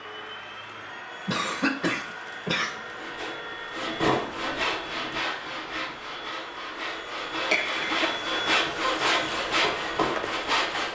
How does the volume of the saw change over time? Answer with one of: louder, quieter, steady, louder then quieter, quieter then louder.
quieter then louder.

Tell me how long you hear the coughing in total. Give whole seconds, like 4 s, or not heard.
2 s.